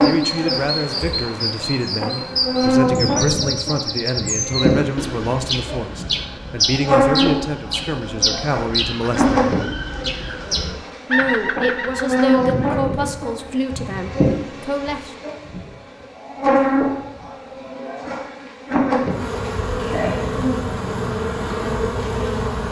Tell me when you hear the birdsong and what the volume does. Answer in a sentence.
The birdsong can be heard from 0.0 to 12.7 s, at a steady volume.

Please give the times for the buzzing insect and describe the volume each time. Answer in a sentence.
The buzzing insect can be heard from 0.0 to 22.6 s, at a steady volume.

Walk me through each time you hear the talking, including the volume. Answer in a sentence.
The talking can be heard from 0.0 to 9.6 s, at a steady volume; and from 11.1 to 15.1 s, getting quieter.